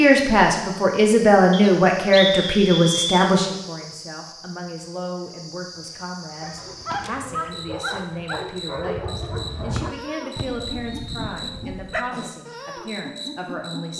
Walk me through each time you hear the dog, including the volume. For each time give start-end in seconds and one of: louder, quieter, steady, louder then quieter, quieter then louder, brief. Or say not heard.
6.4-12.1 quieter.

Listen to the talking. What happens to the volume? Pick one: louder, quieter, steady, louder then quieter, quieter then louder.
quieter.